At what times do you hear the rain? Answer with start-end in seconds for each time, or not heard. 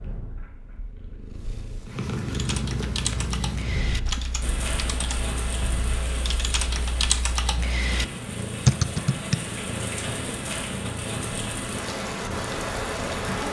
4.4-13.4.